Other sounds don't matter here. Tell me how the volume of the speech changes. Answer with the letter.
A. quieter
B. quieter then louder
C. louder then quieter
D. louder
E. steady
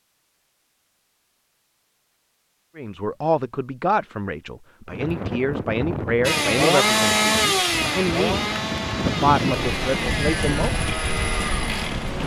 E.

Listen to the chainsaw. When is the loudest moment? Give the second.
7 s.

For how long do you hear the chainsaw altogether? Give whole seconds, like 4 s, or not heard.
6 s.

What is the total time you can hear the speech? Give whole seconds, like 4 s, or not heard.
8 s.